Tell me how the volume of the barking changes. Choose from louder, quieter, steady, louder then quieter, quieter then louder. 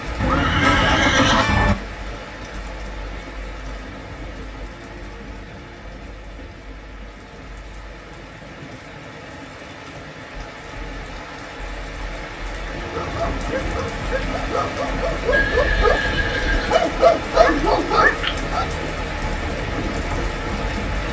louder.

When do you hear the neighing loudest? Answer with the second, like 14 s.
1 s.